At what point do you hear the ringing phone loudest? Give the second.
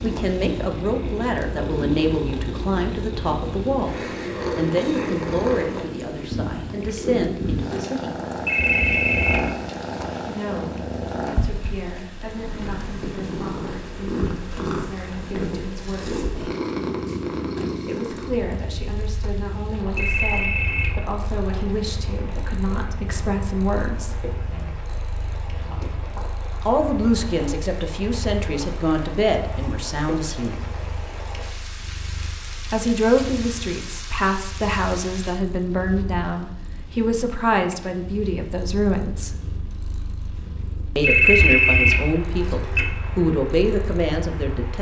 41 s.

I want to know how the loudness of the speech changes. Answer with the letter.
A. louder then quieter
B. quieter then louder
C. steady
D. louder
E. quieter
B.